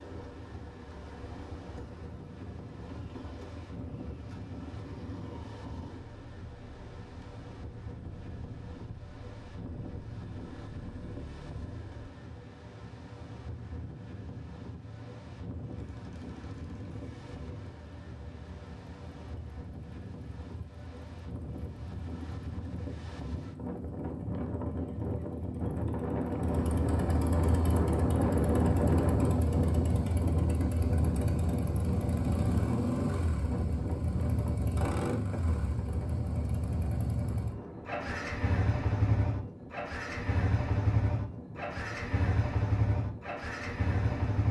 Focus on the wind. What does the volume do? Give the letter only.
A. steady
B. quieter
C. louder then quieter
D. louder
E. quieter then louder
C.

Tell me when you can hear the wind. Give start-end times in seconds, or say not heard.
0.0-44.4.